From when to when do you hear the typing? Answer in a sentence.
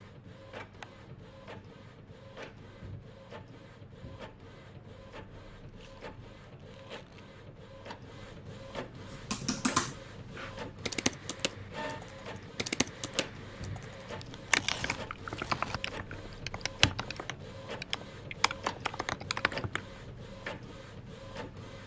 You can hear the typing from 9.1 to 19.8 s.